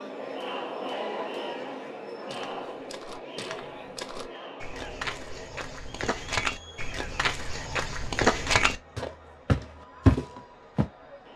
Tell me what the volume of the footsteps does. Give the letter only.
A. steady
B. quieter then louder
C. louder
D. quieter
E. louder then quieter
C.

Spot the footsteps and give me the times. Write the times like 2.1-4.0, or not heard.
2.2-10.8.